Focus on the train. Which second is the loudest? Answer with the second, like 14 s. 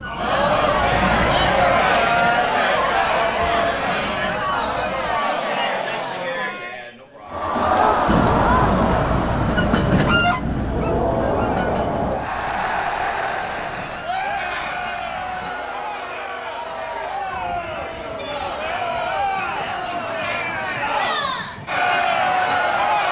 10 s.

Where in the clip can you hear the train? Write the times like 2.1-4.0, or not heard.
0.0-5.2, 8.1-23.0.